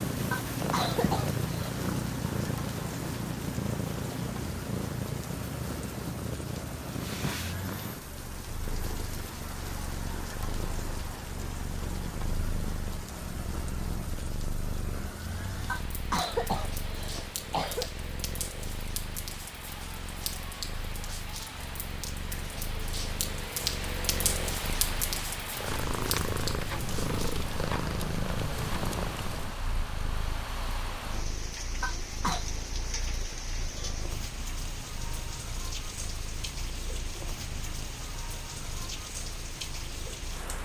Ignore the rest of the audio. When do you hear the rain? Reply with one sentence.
You can hear the rain from 0.0 to 40.6 s.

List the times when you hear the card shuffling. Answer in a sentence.
You can't hear the card shuffling here.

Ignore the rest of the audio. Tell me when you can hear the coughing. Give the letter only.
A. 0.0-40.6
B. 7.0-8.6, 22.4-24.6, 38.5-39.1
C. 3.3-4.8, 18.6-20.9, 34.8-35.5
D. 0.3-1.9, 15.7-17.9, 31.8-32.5
D.